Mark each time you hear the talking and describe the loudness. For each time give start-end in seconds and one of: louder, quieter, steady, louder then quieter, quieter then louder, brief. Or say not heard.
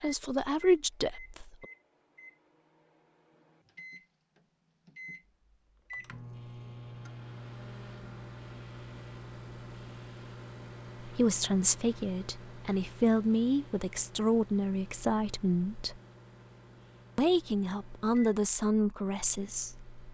0.0-1.6 brief
11.1-16.0 steady
17.1-19.9 brief.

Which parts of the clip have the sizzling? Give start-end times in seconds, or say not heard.
not heard.